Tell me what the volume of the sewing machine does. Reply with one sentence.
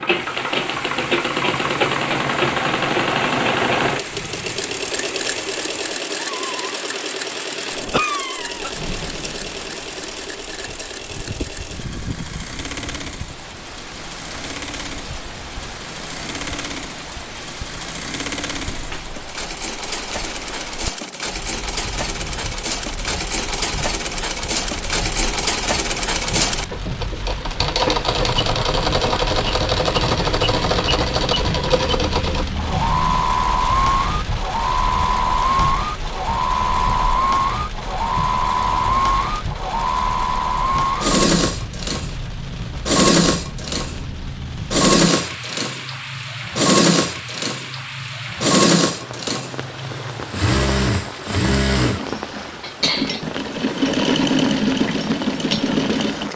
The volume of the sewing machine goes down, then up.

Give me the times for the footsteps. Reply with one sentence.
The footsteps can't be heard in this clip.